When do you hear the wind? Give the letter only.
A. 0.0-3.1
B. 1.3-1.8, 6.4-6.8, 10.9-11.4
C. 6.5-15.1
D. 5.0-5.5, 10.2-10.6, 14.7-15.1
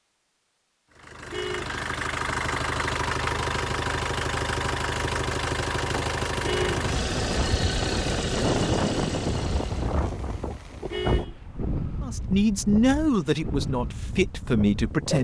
C.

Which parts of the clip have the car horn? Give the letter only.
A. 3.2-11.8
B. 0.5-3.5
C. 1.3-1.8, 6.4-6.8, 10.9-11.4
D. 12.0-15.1
C.